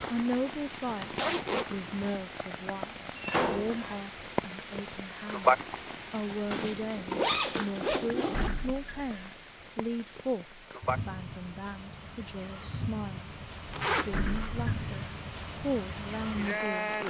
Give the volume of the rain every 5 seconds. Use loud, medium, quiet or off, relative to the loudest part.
medium, loud, medium, loud.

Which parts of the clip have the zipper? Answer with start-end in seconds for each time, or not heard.
1.0-2.1, 6.5-8.5, 13.7-14.3.